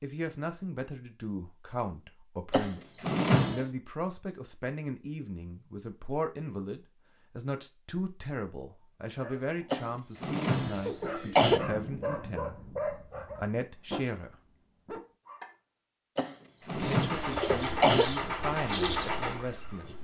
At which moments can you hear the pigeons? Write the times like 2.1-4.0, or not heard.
16.8-19.9.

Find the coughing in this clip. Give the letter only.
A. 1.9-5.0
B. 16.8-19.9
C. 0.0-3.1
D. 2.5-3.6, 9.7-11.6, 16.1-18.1
D.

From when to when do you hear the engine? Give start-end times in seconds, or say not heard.
16.9-19.9.